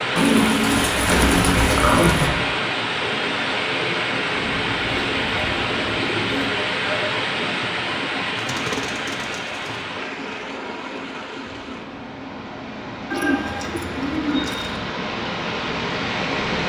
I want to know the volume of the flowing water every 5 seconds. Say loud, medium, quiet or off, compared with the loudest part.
loud, loud, medium, loud.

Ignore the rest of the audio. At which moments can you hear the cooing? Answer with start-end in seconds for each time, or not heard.
0.1-2.3, 4.3-6.5, 8.3-9.8, 13.1-14.8.